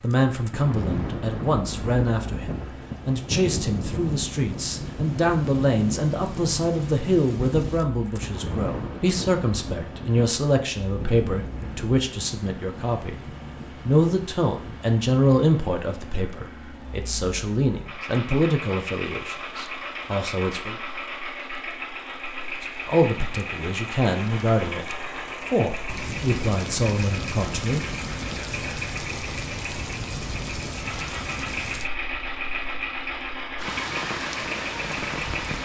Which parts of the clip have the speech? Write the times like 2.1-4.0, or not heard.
0.0-13.2, 13.8-20.8, 22.6-27.9.